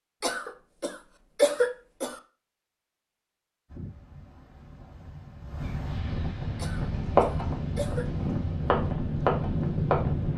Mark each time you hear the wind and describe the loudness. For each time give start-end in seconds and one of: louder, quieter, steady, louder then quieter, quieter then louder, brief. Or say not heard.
3.6-10.3 louder.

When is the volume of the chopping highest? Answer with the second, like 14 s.
7 s.